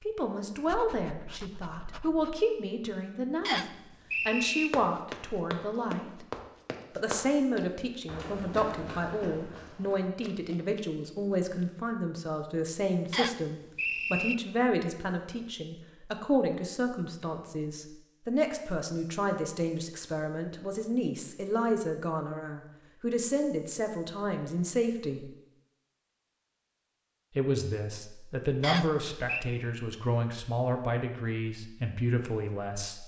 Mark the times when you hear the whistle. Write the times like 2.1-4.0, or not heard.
3.5-4.7, 13.1-14.3, 28.6-29.4.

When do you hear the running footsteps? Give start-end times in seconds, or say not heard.
4.7-11.7.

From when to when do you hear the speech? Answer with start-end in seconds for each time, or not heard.
0.0-6.2, 7.0-25.3, 27.4-33.0.